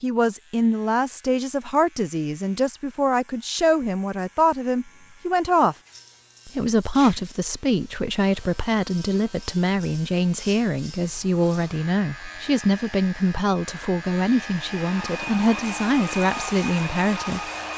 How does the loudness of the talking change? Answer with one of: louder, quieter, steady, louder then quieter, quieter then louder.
steady.